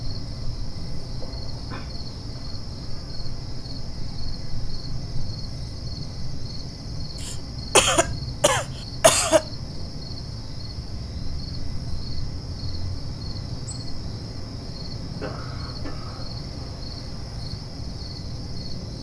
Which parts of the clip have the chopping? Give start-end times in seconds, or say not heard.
not heard.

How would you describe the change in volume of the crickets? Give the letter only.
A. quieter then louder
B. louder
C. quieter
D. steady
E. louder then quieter
D.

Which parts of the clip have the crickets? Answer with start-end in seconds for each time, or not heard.
0.0-18.9.